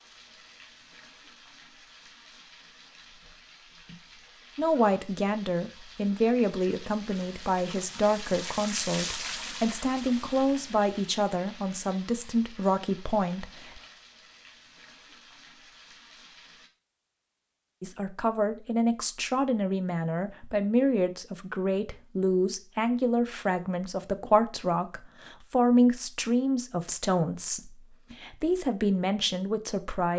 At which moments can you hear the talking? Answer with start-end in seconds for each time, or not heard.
4.5-13.8, 17.8-30.1.